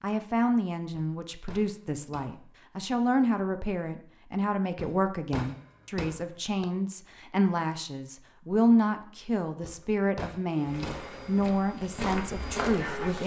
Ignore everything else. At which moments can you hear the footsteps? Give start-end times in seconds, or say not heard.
10.7-13.2.